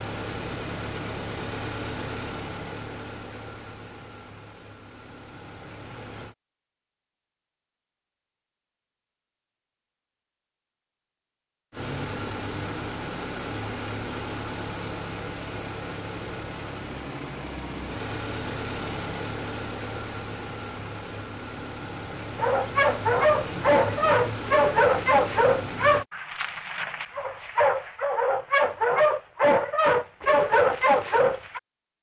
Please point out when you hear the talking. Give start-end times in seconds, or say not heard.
not heard.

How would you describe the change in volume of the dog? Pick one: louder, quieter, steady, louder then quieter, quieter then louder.
quieter then louder.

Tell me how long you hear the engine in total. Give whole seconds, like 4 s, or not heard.
21 s.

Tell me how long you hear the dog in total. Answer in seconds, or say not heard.
9 s.